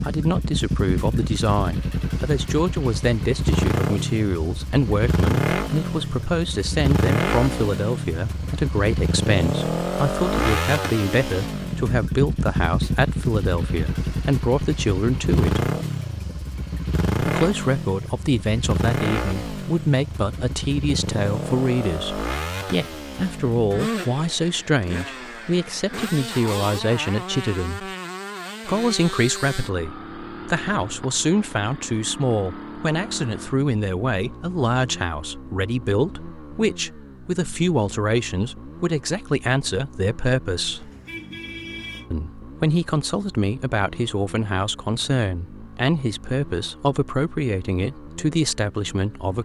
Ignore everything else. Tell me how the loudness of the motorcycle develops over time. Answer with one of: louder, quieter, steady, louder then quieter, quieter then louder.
quieter.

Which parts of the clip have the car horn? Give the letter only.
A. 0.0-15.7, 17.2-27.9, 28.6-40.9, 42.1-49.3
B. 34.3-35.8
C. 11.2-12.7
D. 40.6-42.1
D.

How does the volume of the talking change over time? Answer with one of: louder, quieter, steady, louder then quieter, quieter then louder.
steady.